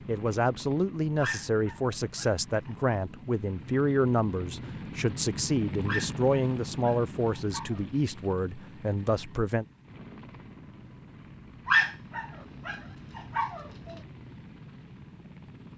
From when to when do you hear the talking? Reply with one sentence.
You can hear the talking from 0.1 to 9.7 s.